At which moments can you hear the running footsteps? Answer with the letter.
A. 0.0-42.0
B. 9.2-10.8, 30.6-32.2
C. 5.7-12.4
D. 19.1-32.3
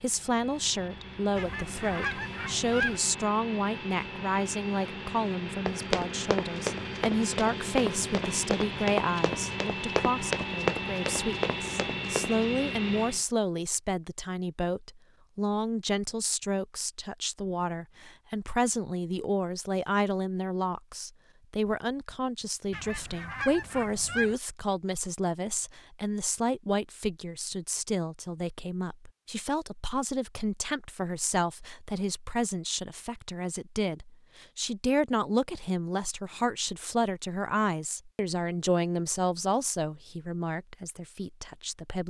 C.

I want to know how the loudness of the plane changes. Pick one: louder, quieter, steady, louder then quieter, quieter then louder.
louder.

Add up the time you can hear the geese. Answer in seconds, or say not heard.
3 s.